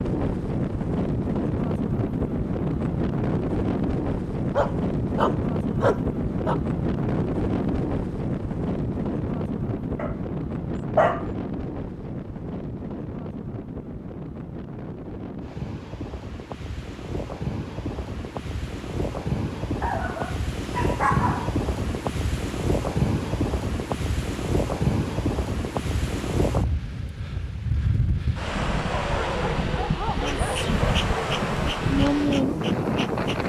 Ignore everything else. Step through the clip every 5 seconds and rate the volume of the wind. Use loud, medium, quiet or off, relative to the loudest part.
loud, loud, medium, medium, loud, loud, loud.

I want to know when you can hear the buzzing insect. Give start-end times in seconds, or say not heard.
30.1-33.4.